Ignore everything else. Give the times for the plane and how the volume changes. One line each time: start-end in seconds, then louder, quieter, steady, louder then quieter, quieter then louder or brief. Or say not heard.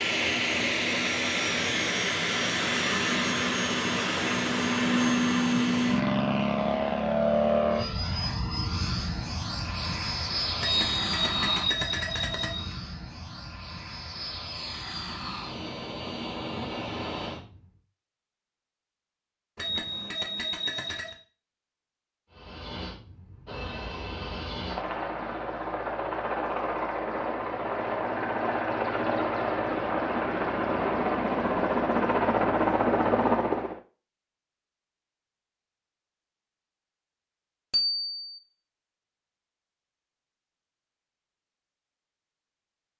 0.0-17.7 quieter
22.3-33.8 louder.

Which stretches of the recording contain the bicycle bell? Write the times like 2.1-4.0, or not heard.
10.6-12.8, 19.6-21.1, 37.7-38.4.